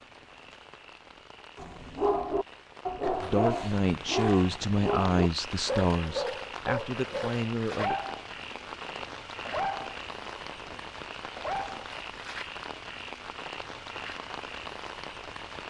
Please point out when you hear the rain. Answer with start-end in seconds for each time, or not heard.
0.0-15.6.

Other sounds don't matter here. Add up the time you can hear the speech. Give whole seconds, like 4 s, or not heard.
5 s.